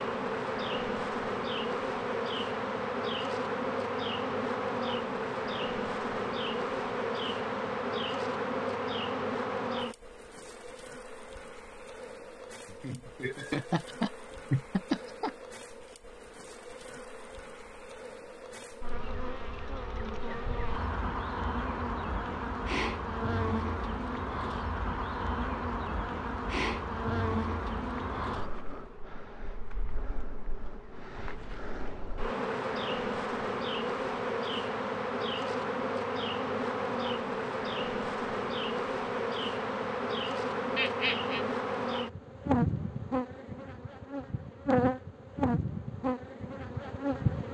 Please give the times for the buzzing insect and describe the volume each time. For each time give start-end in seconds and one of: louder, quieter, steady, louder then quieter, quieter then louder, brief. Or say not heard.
0.0-47.4 quieter then louder.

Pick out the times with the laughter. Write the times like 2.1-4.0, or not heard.
12.7-15.3, 40.8-41.5.